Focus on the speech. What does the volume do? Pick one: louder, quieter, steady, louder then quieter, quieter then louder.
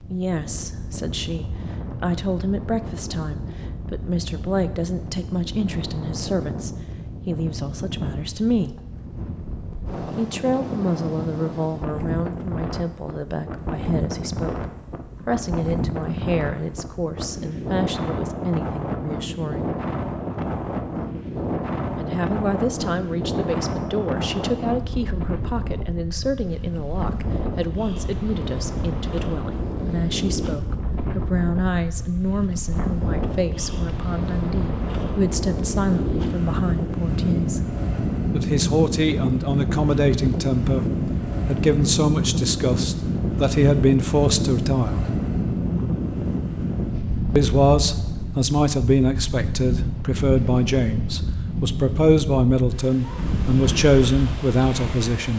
louder.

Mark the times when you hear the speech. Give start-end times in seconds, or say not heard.
0.0-8.8, 10.2-14.7, 15.2-19.7, 21.9-37.6, 38.3-45.0, 47.4-55.3.